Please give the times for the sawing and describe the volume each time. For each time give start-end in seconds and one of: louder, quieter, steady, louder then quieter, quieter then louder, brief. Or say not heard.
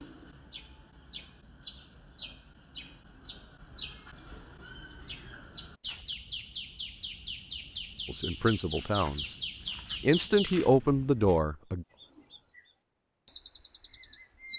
not heard.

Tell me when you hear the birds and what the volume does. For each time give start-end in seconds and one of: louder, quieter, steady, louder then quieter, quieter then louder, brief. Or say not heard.
0.0-14.5 louder.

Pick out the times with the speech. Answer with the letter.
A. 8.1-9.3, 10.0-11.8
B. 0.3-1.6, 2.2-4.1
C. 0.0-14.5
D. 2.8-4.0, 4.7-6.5
A.